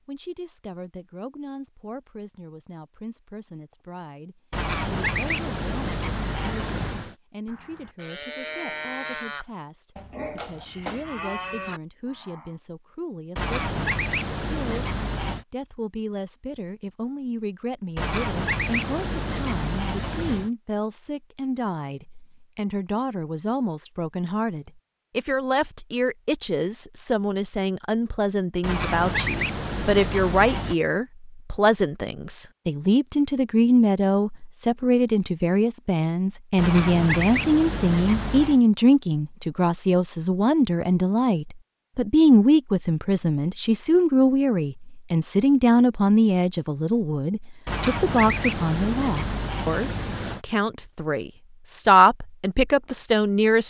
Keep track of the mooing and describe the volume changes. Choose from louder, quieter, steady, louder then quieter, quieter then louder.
louder.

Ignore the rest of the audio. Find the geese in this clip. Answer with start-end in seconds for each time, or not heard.
4.5-7.2, 13.3-15.4, 17.9-20.5, 28.6-30.8, 36.5-38.6, 47.6-50.4.